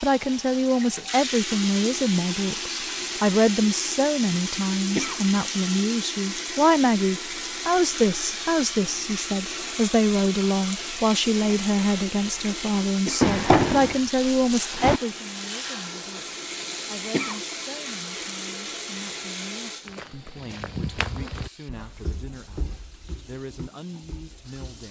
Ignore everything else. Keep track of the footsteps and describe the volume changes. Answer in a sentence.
The loudness of the footsteps goes down.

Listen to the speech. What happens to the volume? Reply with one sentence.
The volume of the speech goes down.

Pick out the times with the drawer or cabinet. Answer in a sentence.
The drawer or cabinet can be heard from 13.2 to 15.0 s.